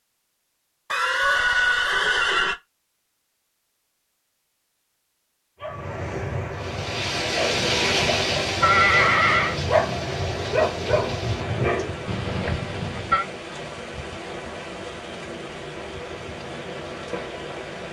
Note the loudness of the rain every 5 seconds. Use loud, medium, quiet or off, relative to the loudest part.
off, loud, medium, medium.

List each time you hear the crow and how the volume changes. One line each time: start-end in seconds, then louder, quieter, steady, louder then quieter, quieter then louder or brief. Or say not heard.
not heard.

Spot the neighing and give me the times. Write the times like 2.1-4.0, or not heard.
0.9-2.5, 7.8-9.6, 12.1-13.2.